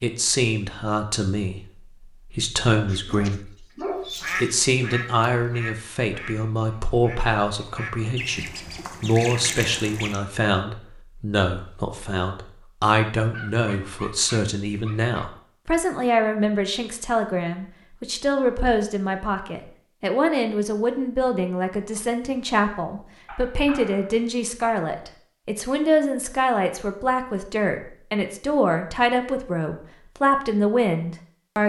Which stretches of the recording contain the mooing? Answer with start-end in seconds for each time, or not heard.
not heard.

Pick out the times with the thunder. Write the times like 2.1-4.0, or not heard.
not heard.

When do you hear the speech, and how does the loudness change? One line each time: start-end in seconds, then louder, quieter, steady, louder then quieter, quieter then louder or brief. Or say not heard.
0.0-31.6 steady.